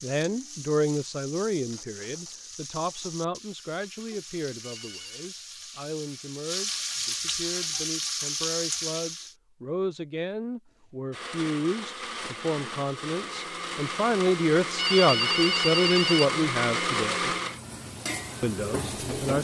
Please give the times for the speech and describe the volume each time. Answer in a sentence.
You can hear the speech from 0.0 to 17.3 s, getting quieter then louder; and briefly from 18.4 to 19.3 s.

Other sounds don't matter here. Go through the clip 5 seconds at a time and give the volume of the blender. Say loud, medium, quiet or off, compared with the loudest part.
off, off, medium, loud.